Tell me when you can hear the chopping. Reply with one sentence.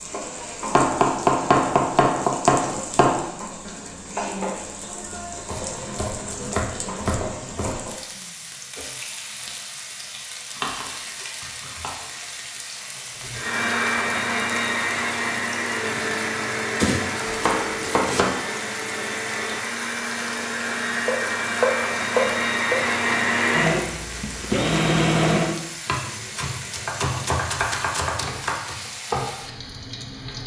You can hear the chopping from 0.8 to 3.2 s, from 5.5 to 7.8 s, from 10.6 to 11.9 s, from 16.8 to 18.4 s, from 21.1 to 22.8 s and from 25.9 to 28.8 s.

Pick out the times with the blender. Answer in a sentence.
You can hear the blender from 13.3 to 25.6 s.